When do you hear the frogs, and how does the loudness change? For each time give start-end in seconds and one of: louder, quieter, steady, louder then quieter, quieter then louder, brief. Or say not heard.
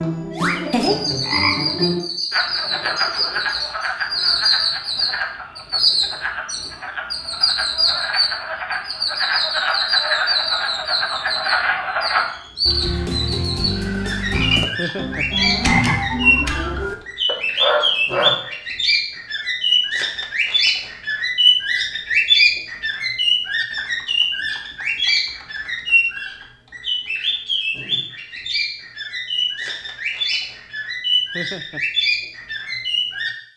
0.0-18.4 quieter then louder.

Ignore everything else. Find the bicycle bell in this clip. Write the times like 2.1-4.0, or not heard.
not heard.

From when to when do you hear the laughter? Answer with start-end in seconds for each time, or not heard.
14.8-15.2, 31.3-31.8.